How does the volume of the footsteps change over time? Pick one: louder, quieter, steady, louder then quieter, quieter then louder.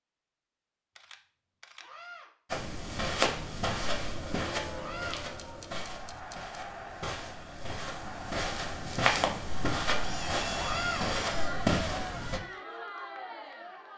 quieter then louder.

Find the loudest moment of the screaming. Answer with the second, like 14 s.
11 s.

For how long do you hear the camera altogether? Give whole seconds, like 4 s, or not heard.
4 s.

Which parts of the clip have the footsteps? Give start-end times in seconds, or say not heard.
2.5-12.4.